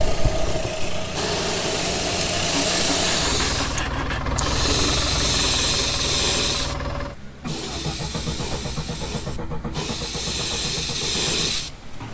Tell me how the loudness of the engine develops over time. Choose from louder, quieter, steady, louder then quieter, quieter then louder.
quieter.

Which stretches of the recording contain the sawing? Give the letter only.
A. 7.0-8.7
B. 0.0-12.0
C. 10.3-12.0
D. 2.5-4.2
D.